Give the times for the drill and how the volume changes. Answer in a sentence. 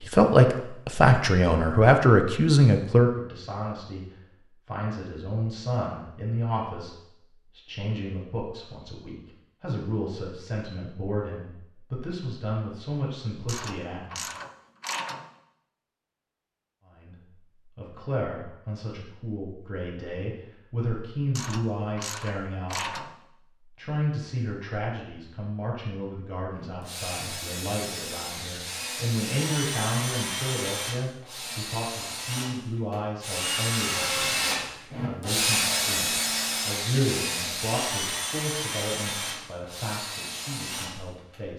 The drill can be heard from 26.5 to 41.4 s, getting louder then quieter.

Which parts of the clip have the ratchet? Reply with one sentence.
The ratchet can be heard from 13.4 to 15.3 s and from 21.4 to 23.1 s.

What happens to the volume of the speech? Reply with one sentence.
The loudness of the speech goes down.